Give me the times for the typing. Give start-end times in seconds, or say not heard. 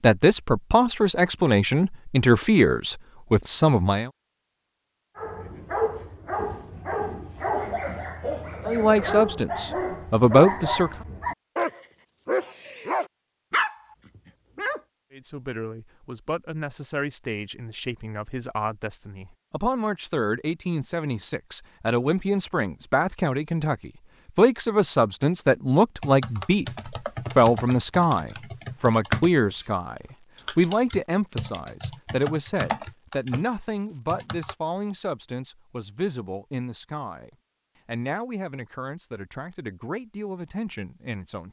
26.0-34.5.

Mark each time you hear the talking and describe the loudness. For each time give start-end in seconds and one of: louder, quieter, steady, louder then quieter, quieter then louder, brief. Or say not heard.
0.0-4.1 steady
8.7-10.9 brief
15.1-41.4 louder then quieter.